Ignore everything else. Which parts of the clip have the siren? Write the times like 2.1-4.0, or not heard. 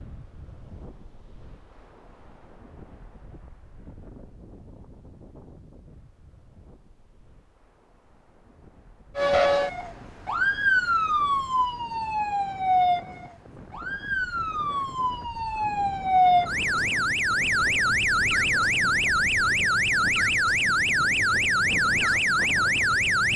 9.2-23.3.